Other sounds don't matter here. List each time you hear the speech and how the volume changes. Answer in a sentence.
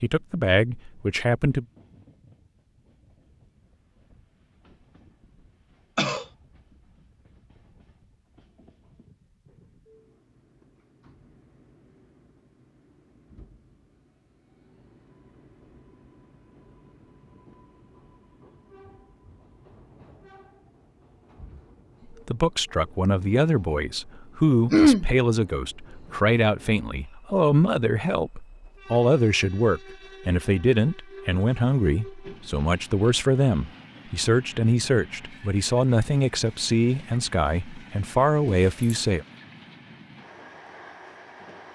The speech can be heard briefly from 0.0 to 1.6 s; and from 22.1 to 39.2 s, at a steady volume.